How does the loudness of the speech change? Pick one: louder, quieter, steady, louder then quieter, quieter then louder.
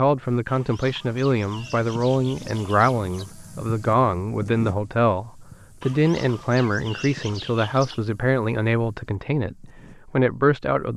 steady.